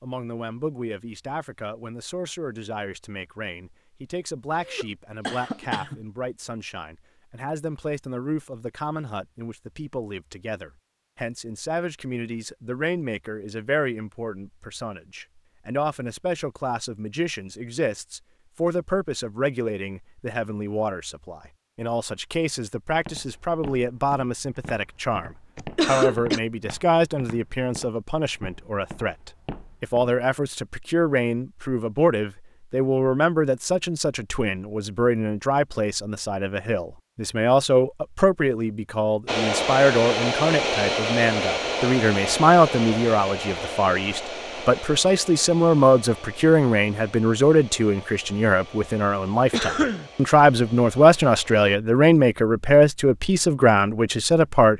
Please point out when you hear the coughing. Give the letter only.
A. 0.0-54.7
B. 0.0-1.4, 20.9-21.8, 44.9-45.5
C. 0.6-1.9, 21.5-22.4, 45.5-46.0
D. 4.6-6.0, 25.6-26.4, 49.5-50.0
D.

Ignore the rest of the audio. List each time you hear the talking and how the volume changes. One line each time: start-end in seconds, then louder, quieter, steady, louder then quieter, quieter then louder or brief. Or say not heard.
0.0-54.7 louder.